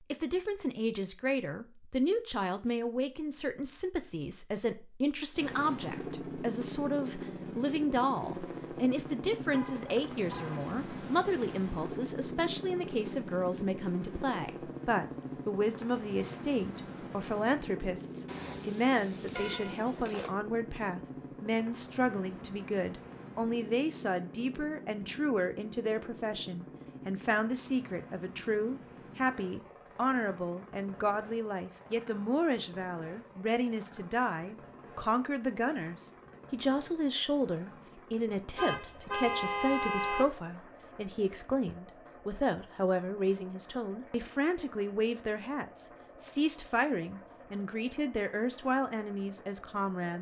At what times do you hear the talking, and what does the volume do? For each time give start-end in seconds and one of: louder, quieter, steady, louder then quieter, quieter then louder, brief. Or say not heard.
0.1-50.1 steady.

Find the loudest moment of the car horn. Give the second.
40 s.